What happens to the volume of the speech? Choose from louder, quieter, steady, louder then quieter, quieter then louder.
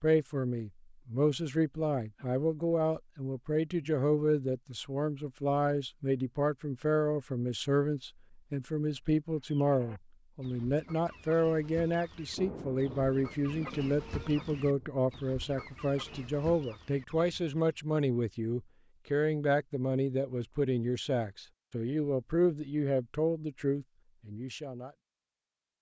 steady.